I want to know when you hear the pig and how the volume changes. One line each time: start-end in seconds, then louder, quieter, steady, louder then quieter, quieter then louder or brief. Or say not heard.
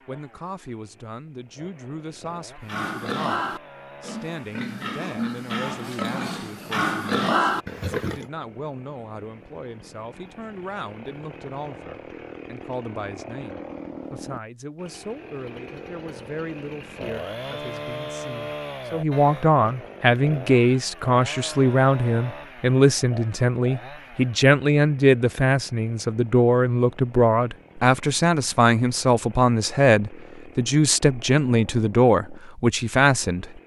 2.6-8.2 quieter then louder.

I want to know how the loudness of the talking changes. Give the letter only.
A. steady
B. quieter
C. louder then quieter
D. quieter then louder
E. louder
E.